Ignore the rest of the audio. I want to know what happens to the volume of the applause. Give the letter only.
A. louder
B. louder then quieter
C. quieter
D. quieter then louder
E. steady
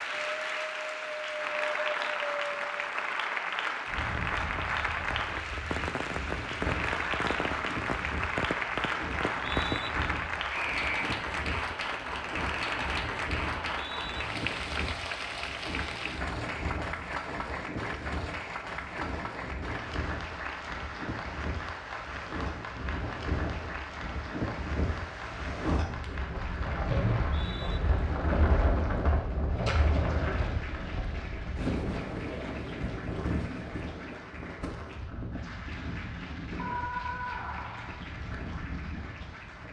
C.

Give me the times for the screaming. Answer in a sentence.
The screaming can be heard from 10.4 to 11.1 s and from 36.5 to 38.0 s.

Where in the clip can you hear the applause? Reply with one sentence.
You can hear the applause from 0.0 to 39.6 s.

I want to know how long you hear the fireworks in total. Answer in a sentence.
The fireworks can be heard for 6 seconds in total.